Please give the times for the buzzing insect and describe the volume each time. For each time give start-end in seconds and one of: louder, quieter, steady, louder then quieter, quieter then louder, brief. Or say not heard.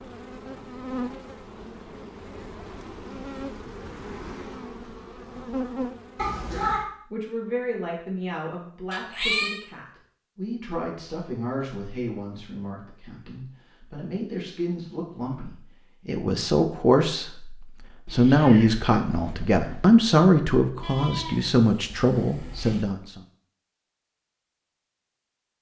0.0-6.3 quieter then louder.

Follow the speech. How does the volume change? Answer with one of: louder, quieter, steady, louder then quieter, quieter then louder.
louder.